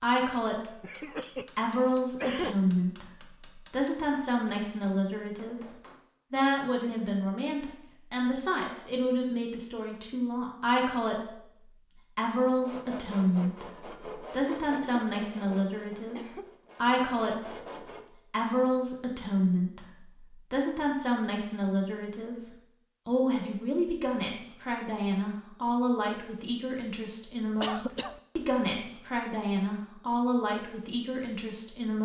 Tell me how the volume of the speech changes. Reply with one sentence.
The loudness of the speech stays about the same.